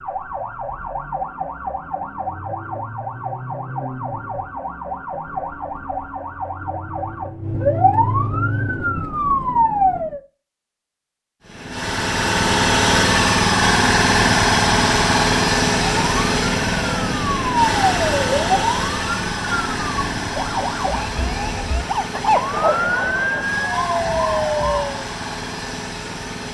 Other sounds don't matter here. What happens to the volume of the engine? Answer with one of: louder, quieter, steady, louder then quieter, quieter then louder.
quieter.